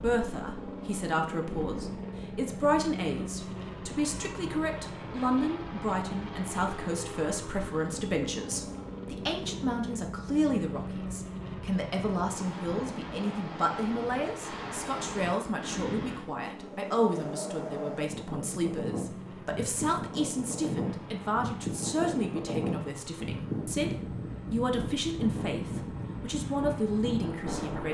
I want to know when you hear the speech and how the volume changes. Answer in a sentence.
The speech can be heard from 0.0 to 27.8 s, at a steady volume.